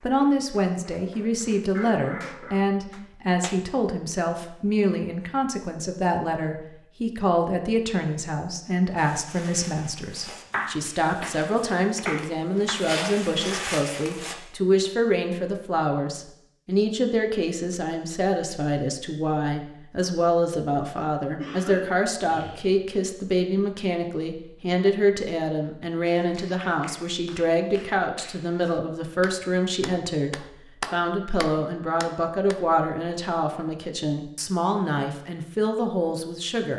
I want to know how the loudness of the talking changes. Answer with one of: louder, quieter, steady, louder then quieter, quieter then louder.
steady.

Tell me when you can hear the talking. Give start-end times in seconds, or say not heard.
0.0-36.7.